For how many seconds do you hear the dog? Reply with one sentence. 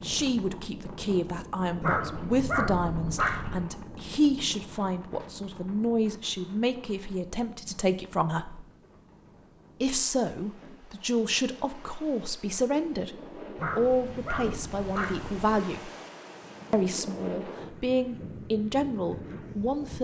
You can hear the dog for 4 seconds altogether.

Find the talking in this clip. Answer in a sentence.
The talking can be heard from 0.0 to 8.7 s, from 9.8 to 13.2 s, from 13.8 to 15.9 s and from 16.7 to 20.0 s.